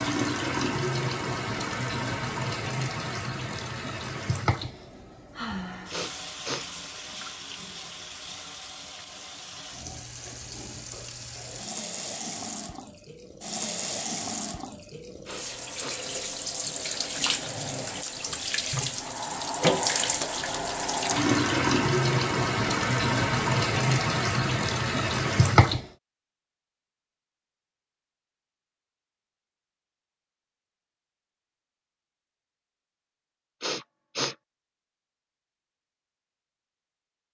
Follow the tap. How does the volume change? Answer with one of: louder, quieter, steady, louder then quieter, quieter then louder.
quieter then louder.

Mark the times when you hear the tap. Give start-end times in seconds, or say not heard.
0.0-25.9.